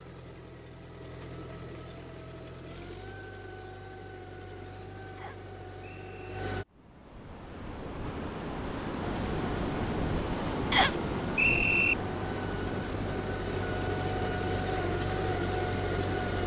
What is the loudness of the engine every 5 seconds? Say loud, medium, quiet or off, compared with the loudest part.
quiet, medium, loud, loud.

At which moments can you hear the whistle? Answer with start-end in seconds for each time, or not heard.
5.2-6.4, 10.7-11.9.